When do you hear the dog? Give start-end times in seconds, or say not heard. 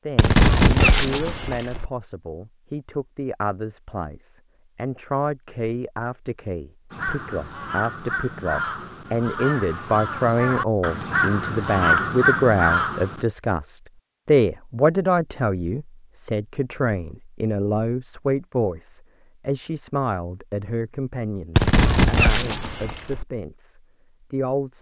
not heard.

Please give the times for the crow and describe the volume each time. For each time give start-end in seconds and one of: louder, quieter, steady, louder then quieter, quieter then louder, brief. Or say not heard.
6.9-13.2 louder.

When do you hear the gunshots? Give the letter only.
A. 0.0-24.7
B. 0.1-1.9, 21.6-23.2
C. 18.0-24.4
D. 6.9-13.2
B.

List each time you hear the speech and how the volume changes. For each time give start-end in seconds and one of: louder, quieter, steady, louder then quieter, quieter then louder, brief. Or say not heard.
0.0-24.7 louder then quieter.